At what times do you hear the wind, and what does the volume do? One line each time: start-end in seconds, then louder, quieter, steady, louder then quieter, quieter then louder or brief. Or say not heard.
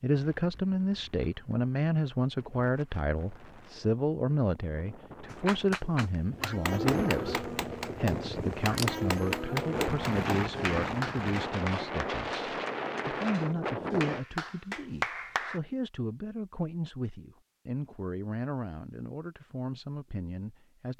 0.1-14.2 louder.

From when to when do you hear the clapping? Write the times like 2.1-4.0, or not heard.
5.3-15.6.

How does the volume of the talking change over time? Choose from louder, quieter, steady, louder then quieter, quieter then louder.
quieter.